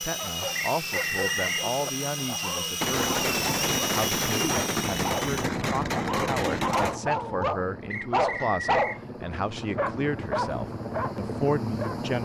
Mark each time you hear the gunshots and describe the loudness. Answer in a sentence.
The gunshots can be heard from 2.8 to 7.0 s, at a steady volume.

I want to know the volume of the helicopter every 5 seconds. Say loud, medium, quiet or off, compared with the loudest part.
loud, medium, loud.